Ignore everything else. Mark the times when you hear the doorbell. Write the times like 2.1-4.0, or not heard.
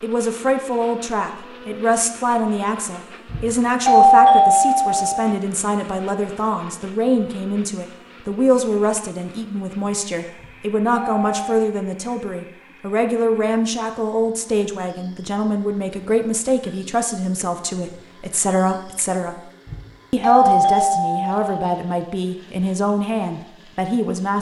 3.2-5.3, 10.3-11.6, 19.6-21.6.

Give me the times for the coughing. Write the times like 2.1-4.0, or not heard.
not heard.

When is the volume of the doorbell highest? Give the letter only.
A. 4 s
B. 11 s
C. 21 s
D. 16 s
A.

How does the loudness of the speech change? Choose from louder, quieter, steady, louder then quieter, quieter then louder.
steady.